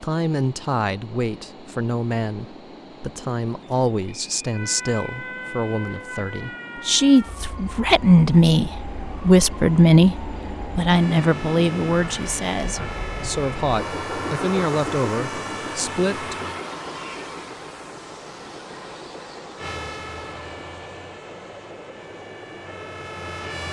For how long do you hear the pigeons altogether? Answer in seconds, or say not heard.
not heard.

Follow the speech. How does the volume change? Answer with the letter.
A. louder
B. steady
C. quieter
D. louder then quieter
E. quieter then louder
D.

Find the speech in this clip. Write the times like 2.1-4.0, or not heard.
0.0-16.4.